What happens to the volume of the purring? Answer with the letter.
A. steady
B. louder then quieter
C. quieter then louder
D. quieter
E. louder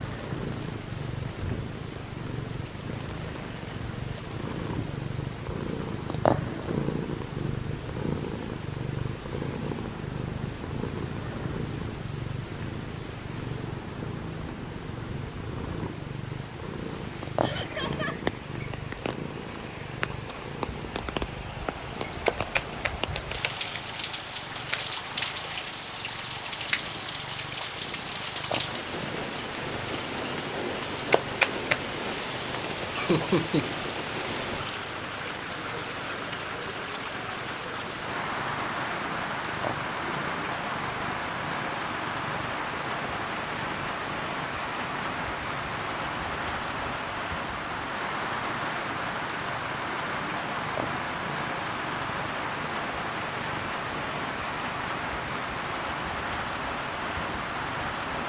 D.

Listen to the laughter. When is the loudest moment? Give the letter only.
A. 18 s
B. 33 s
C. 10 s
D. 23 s
B.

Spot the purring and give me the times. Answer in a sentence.
The purring can be heard from 0.0 to 58.2 s.